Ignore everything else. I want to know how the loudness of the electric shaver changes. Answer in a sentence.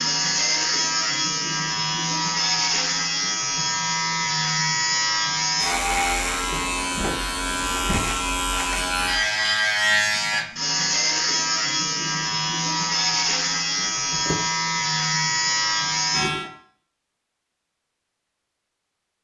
The loudness of the electric shaver stays about the same.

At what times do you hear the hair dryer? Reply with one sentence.
The hair dryer can't be heard in this clip.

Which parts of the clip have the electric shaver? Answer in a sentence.
The electric shaver can be heard from 0.0 to 16.5 s.